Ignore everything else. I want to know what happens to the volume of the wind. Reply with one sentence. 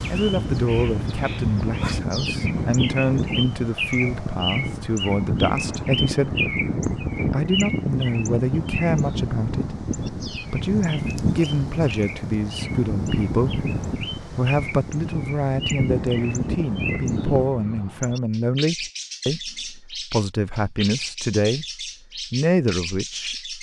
The volume of the wind stays about the same.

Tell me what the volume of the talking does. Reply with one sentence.
The loudness of the talking stays about the same.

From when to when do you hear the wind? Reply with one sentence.
The wind can be heard from 0.0 to 17.6 s.